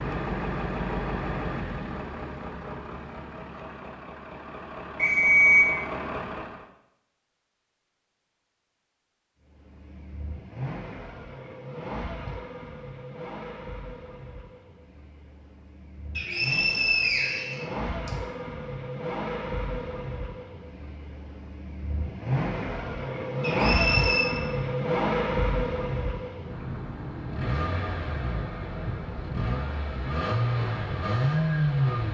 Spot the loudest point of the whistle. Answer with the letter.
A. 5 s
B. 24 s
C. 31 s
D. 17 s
A.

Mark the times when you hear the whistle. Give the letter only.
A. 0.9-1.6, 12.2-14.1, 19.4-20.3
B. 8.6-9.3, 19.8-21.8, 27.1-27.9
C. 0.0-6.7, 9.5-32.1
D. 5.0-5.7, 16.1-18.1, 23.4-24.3
D.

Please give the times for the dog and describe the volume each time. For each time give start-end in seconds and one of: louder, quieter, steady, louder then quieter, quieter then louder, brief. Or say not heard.
not heard.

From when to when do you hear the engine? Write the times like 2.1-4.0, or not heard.
0.0-6.7, 9.5-32.1.